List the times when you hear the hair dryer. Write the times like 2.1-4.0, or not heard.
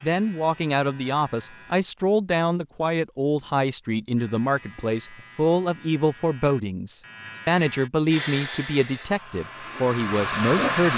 8.1-10.9.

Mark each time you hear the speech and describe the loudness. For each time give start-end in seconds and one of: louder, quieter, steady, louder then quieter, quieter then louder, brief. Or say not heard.
0.0-10.9 steady.